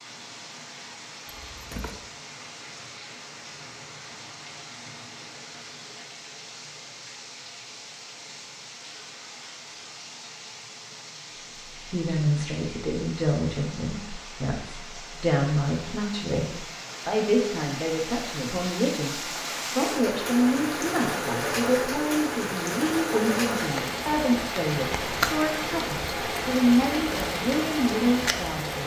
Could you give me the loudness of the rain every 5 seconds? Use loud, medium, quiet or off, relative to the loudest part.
quiet, quiet, quiet, medium, loud, loud.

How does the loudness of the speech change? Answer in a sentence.
The volume of the speech stays about the same.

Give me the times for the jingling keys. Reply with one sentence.
The jingling keys can be heard from 1.2 to 2.0 s.